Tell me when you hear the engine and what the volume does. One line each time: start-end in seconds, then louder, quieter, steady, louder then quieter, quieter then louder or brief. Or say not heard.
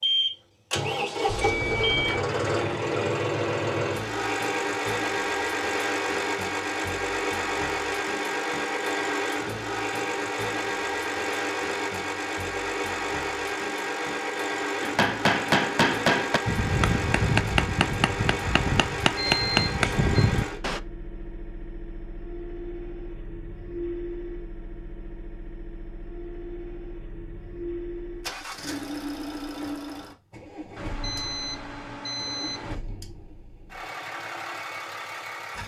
0.0-35.6 quieter.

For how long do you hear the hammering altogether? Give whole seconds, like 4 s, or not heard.
6 s.